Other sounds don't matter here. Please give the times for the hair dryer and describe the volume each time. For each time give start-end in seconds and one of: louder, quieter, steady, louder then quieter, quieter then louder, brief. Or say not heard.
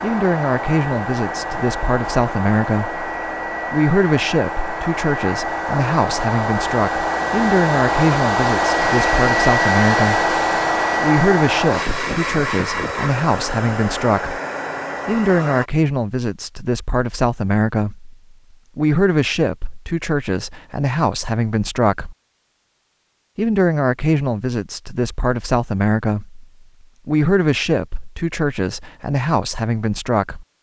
0.0-15.7 louder then quieter.